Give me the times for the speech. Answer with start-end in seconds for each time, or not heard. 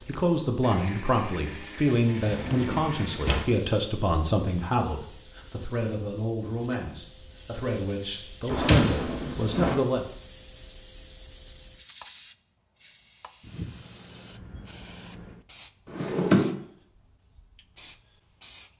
0.1-10.1.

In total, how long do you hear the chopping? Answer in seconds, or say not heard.
not heard.